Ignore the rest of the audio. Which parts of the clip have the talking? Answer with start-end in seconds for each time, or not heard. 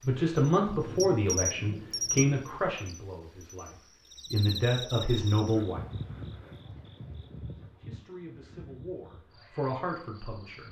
0.0-5.8, 7.7-10.6.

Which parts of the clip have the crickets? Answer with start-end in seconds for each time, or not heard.
0.0-10.6.